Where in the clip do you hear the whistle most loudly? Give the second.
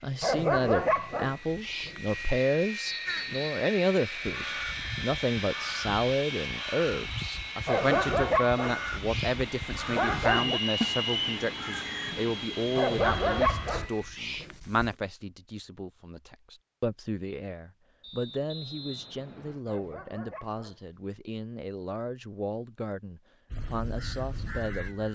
11 s.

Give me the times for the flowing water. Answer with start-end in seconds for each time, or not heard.
not heard.